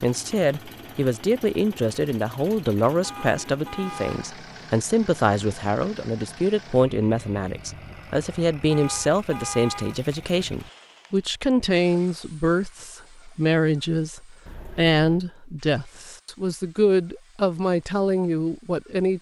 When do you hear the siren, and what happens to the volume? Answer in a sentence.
The siren can't be heard in this clip.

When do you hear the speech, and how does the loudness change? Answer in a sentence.
You can hear the speech from 0.0 to 19.1 s, at a steady volume.